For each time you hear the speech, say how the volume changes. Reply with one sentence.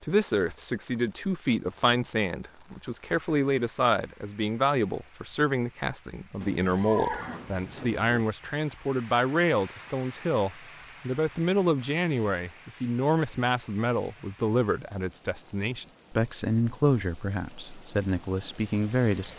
You can hear the speech from 0.0 to 19.3 s, at a steady volume.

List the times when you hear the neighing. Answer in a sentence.
You can hear the neighing from 6.4 to 8.2 s.